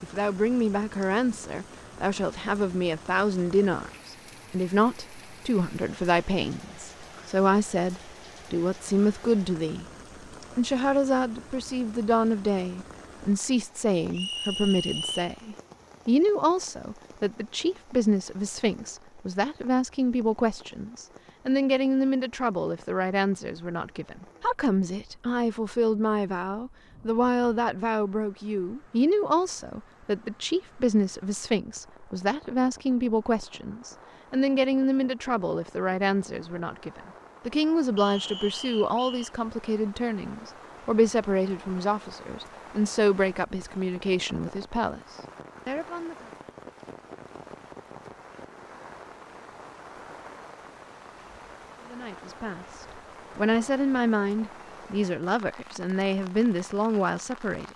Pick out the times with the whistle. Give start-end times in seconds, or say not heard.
14.1-15.3, 38.0-39.3.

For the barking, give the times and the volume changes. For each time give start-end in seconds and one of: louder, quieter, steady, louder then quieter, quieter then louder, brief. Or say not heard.
not heard.